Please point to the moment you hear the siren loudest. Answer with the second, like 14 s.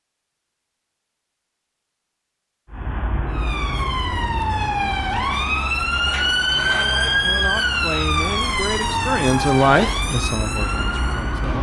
7 s.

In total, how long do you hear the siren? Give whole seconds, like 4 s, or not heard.
8 s.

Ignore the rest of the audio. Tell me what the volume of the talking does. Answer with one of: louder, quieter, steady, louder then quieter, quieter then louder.
louder then quieter.